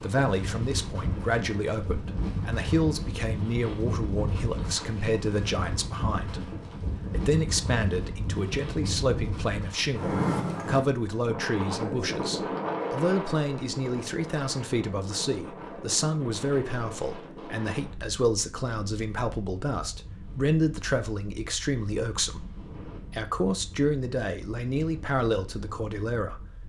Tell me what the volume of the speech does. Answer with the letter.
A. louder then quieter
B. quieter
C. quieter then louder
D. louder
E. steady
E.